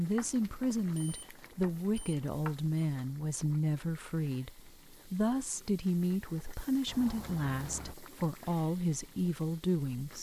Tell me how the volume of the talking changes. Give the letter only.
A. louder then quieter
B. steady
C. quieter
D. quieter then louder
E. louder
B.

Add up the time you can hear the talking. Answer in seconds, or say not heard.
10 s.